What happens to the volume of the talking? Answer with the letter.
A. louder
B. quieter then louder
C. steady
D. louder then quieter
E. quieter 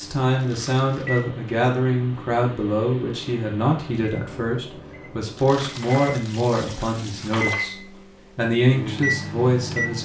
C.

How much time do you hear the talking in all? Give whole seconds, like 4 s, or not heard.
10 s.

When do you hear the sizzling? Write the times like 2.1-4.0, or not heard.
not heard.